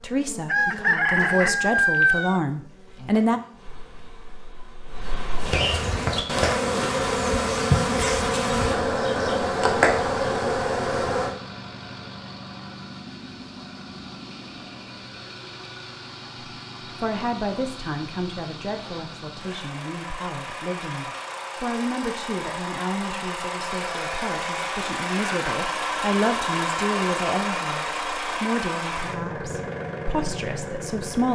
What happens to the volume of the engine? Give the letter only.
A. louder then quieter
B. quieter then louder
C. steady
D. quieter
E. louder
E.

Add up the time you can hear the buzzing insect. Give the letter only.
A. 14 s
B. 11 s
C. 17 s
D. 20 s
B.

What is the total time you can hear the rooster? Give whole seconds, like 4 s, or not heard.
2 s.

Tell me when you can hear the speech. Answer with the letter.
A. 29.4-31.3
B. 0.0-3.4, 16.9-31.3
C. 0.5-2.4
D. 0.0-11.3
B.